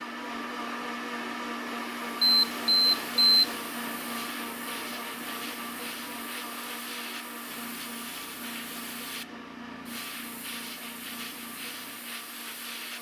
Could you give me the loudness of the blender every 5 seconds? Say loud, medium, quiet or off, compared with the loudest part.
loud, medium, medium.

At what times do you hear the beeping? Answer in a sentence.
The beeping can be heard from 2.2 to 3.5 s.